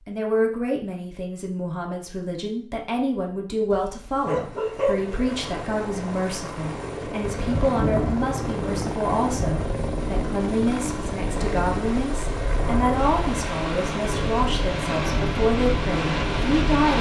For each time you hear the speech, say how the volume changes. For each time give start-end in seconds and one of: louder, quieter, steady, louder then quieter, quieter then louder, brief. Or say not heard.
0.1-16.9 steady.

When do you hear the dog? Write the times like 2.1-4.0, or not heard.
3.6-5.2.